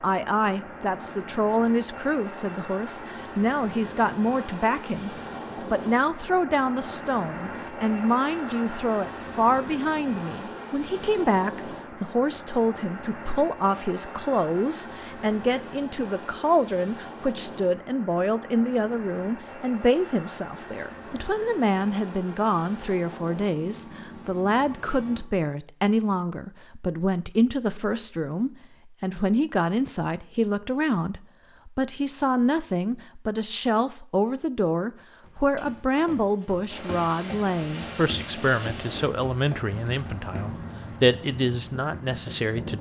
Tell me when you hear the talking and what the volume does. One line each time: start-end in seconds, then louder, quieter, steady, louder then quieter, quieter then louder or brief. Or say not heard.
0.0-42.7 steady.